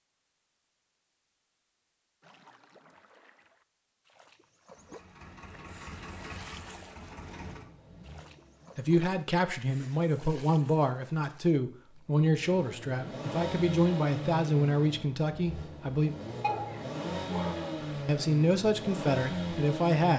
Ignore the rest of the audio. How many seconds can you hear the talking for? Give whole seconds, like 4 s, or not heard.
10 s.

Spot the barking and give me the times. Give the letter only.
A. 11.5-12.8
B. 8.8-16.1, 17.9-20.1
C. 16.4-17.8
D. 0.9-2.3
C.